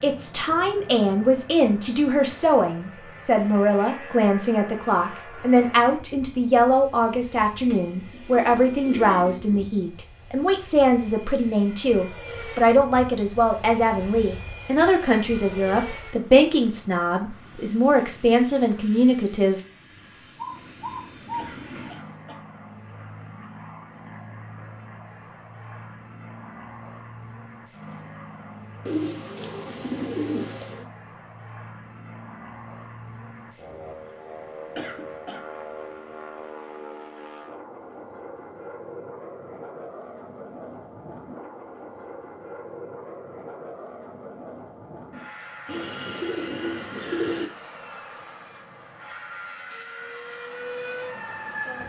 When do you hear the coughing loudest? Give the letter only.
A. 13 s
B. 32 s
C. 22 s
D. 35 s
D.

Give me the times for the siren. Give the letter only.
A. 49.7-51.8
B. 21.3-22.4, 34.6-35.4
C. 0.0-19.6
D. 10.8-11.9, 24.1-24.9
A.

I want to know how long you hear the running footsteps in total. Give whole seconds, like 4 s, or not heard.
not heard.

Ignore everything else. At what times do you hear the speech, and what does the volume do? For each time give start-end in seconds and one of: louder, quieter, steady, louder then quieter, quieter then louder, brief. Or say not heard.
0.0-19.6 steady.